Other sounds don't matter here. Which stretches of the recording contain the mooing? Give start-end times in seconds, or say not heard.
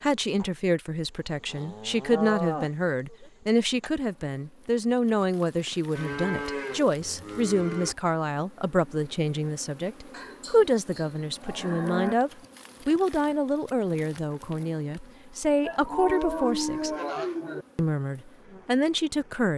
1.4-3.3, 6.0-8.0, 10.1-12.2, 15.6-17.6.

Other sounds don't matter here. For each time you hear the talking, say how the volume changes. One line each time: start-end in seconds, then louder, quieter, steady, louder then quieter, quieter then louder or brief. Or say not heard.
0.0-16.9 steady
17.8-19.5 brief.